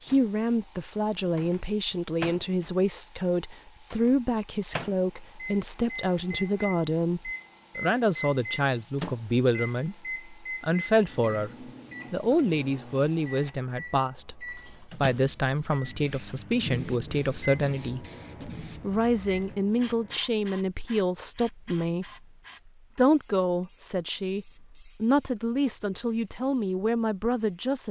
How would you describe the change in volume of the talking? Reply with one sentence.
The volume of the talking stays about the same.